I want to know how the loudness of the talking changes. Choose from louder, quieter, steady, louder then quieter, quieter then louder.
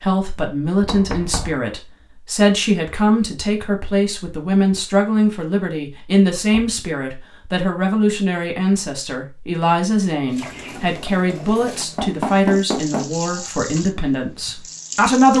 steady.